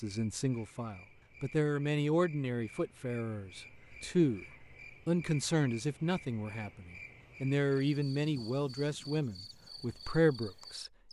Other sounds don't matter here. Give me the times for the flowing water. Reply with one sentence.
The flowing water can't be heard in this clip.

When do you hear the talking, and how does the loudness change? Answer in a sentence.
The talking can be heard from 0.0 to 10.8 s, at a steady volume.